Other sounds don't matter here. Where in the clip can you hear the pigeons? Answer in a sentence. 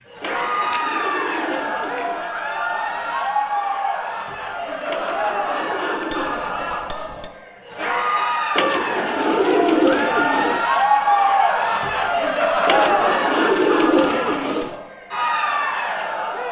You can hear the pigeons from 0.2 to 2.3 s, from 4.8 to 6.5 s, from 8.6 to 10.7 s and from 12.7 to 14.8 s.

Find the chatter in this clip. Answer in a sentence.
The chatter can be heard from 0.1 to 16.4 s.